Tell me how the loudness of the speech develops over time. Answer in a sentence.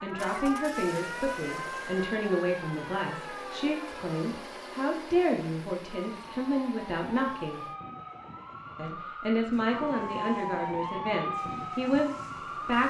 The volume of the speech stays about the same.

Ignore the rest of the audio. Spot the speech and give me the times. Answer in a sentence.
You can hear the speech from 0.0 to 7.7 s and from 8.8 to 12.8 s.